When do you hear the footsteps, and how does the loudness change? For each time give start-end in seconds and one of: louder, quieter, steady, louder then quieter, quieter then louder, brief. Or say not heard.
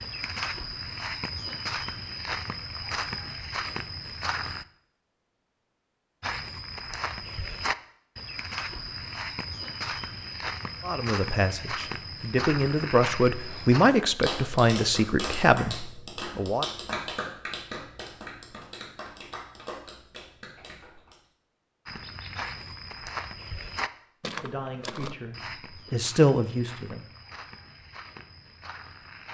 0.0-4.7 steady
6.2-13.9 steady
21.9-29.3 quieter.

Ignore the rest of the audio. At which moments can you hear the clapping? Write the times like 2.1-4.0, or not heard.
13.9-21.2.